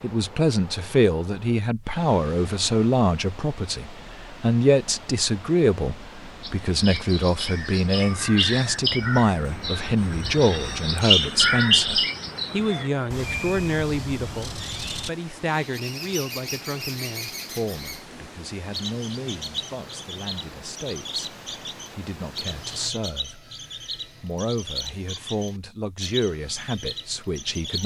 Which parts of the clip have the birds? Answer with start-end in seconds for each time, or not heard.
6.4-27.8.